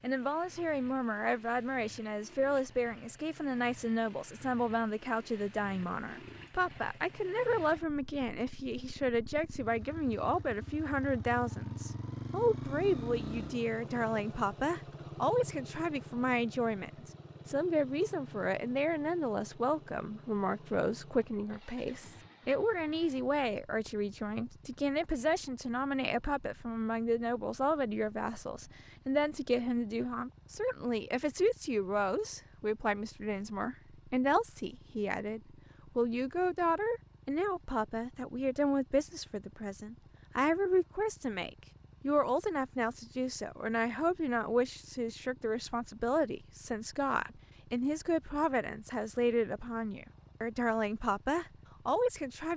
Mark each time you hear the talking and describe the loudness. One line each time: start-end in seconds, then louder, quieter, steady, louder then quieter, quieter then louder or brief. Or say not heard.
0.0-52.5 steady.